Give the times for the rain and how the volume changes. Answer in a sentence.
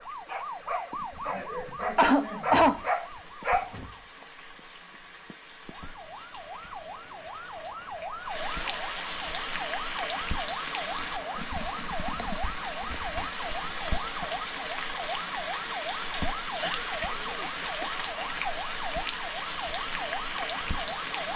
You can hear the rain from 0.0 to 21.3 s, getting louder.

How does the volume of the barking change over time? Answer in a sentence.
The volume of the barking goes up.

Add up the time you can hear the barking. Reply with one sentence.
You can hear the barking for 4 seconds altogether.